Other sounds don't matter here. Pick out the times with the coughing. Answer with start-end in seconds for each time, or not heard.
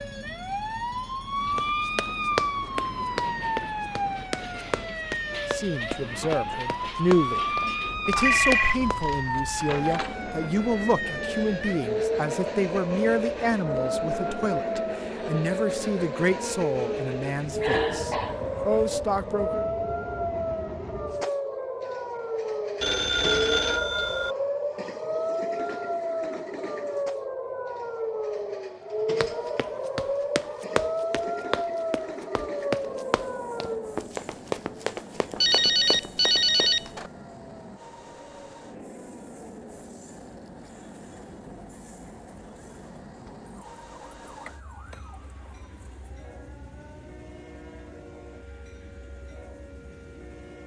17.6-18.4.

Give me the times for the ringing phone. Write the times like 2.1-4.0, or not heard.
8.2-10.2, 22.8-24.4, 35.4-37.1.